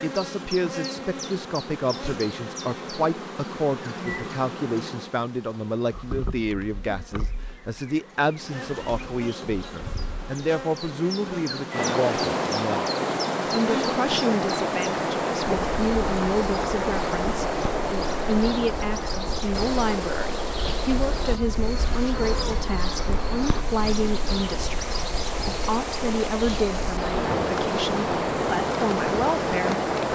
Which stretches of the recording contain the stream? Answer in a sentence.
You can hear the stream from 11.7 to 30.0 s.